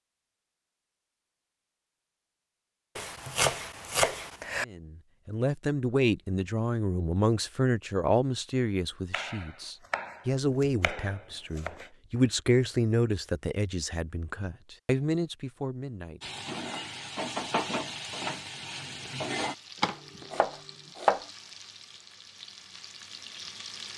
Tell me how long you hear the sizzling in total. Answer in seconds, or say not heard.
8 s.